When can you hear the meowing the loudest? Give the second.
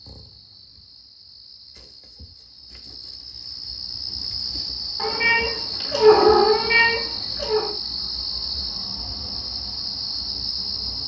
6 s.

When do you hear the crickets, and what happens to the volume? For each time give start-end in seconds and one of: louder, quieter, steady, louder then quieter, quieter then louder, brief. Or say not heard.
0.0-11.0 louder.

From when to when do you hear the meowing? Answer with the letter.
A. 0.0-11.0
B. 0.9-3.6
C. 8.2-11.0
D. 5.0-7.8
D.